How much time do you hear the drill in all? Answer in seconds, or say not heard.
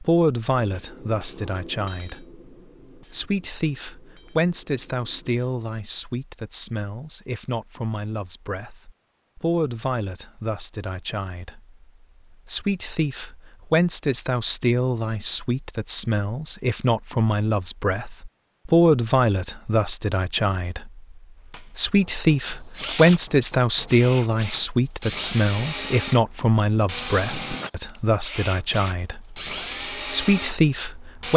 9 s.